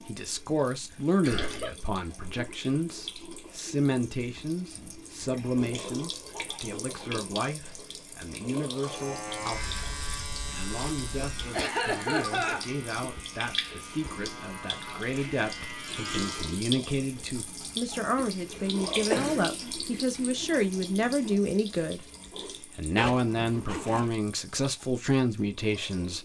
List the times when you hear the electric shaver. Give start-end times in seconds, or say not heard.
8.8-16.6.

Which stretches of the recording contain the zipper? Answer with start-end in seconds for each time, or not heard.
22.9-24.1.